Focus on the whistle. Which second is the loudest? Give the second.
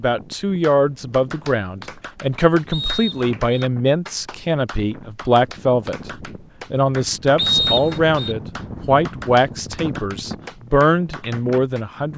8 s.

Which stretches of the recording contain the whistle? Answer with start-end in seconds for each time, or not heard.
2.7-3.6, 7.3-8.3.